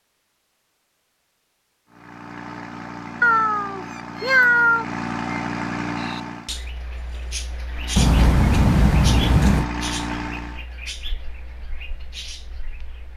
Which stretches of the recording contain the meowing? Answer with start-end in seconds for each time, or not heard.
3.2-4.8, 8.0-9.7.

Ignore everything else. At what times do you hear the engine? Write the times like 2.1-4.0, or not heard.
1.9-6.6, 7.7-10.7.